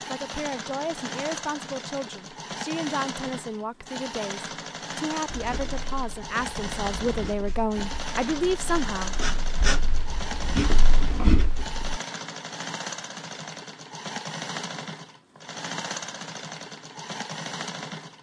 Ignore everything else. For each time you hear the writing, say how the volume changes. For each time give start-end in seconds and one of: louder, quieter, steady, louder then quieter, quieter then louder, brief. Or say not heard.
5.3-12.0 louder.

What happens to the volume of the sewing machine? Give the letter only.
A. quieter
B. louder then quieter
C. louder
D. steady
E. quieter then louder
D.